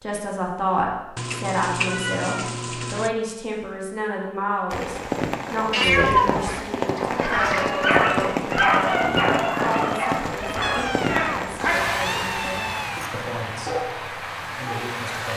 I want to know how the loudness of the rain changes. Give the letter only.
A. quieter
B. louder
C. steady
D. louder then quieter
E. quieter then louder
A.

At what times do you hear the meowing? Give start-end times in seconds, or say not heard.
1.1-3.1, 5.7-7.7, 10.6-13.1.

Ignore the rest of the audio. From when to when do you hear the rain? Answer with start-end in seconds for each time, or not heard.
4.7-15.3.